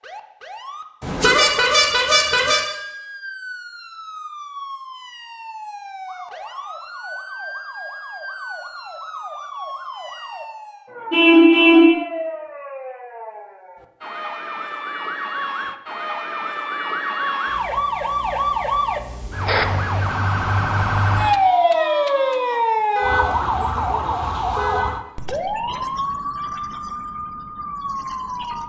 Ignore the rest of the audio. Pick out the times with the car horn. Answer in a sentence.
You can hear the car horn from 1.0 to 2.6 s, from 11.1 to 11.9 s and from 22.9 to 24.9 s.